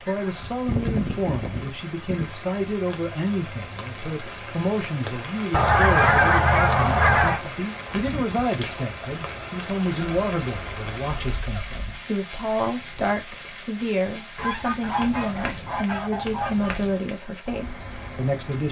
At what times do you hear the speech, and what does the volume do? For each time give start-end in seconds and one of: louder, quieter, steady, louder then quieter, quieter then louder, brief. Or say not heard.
0.0-18.6 steady.